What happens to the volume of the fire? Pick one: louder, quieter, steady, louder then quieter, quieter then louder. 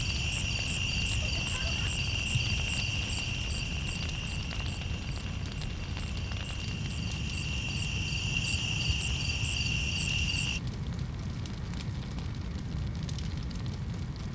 steady.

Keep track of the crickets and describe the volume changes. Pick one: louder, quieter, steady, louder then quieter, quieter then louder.
quieter then louder.